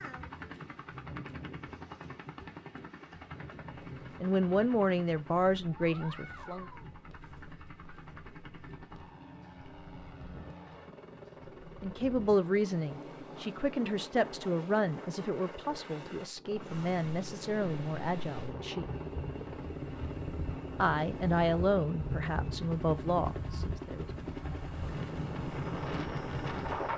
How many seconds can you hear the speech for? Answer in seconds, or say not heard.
13 s.